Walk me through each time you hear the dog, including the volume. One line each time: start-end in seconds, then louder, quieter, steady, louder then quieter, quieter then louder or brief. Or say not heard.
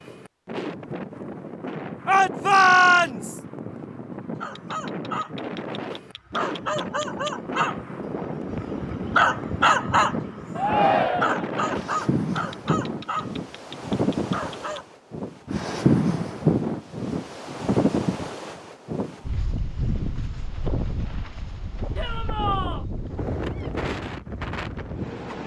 4.4-14.8 louder then quieter.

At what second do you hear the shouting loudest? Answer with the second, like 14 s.
3 s.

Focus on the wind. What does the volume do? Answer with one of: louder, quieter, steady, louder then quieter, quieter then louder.
louder then quieter.